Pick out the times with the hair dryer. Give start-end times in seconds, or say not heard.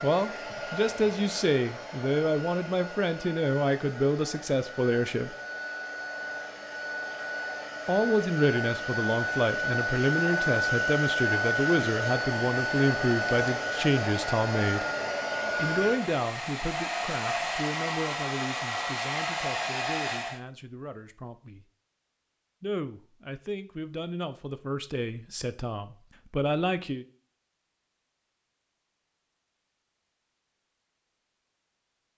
0.0-20.4.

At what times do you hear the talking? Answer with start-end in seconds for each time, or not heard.
0.0-5.3, 7.8-14.8, 15.6-21.6, 22.6-27.1.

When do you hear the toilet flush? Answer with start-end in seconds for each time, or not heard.
not heard.